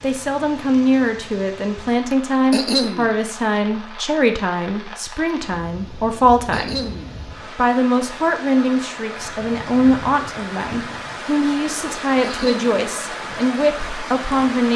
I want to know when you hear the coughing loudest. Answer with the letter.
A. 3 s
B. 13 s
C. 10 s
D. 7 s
A.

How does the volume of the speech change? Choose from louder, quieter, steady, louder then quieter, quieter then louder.
steady.